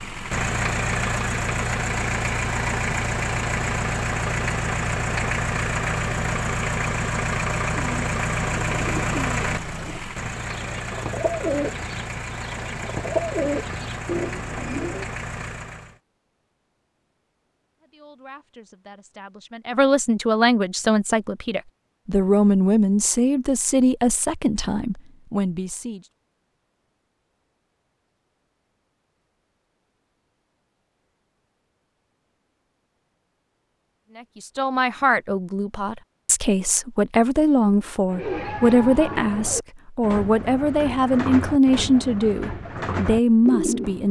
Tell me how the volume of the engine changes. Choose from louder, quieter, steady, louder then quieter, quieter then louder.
quieter.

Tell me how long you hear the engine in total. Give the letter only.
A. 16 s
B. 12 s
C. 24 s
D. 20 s
A.